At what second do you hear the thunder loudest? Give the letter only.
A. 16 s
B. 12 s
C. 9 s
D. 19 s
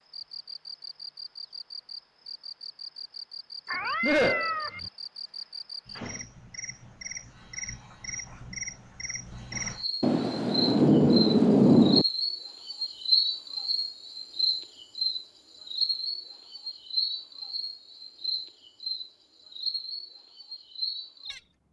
B.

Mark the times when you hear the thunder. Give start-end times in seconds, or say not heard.
10.0-12.1.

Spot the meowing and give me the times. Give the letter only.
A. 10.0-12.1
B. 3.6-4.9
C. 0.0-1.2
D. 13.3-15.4
B.